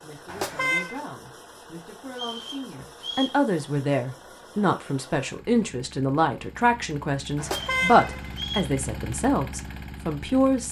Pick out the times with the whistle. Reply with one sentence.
The whistle can be heard from 2.1 to 3.4 s and from 7.5 to 8.8 s.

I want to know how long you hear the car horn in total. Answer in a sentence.
You can hear the car horn for 2 seconds altogether.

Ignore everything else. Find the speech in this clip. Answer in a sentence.
The speech can be heard from 0.0 to 10.6 s.